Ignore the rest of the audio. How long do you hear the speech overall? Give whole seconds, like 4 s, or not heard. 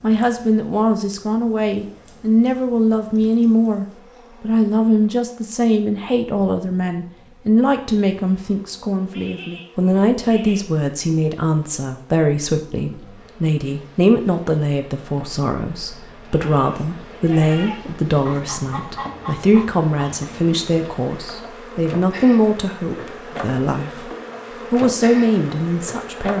26 s.